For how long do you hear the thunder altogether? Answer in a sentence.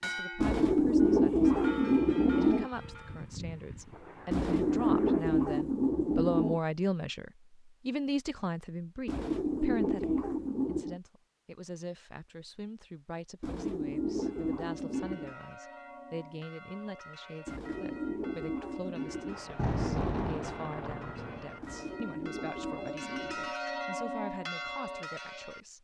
The thunder can be heard for 5 seconds in total.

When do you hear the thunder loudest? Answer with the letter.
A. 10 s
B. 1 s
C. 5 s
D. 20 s
D.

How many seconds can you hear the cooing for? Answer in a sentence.
The cooing can be heard for 12 seconds in total.